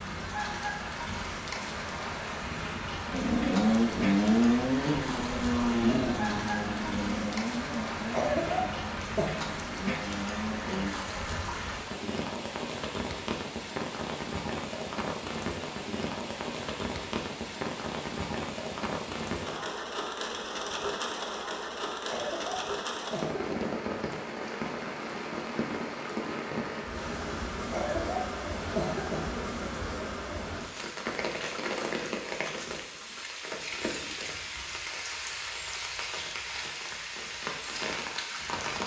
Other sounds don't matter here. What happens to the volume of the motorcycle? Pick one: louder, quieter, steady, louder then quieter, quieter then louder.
quieter.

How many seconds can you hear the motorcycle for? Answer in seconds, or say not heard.
8 s.